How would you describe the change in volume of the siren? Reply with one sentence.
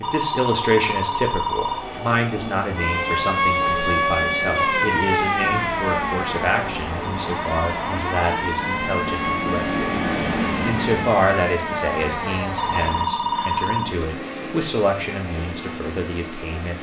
The volume of the siren goes down.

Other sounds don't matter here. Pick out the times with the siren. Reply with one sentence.
You can hear the siren from 2.8 to 13.1 s.